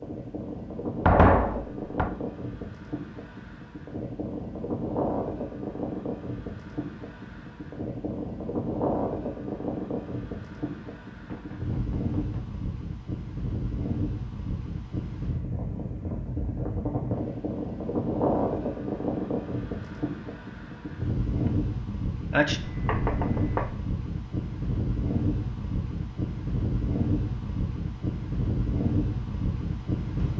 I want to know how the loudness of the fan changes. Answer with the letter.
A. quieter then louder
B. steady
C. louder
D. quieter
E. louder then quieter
B.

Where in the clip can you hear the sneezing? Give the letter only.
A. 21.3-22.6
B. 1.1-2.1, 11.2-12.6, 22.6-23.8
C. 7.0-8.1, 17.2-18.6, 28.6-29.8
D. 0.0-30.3
A.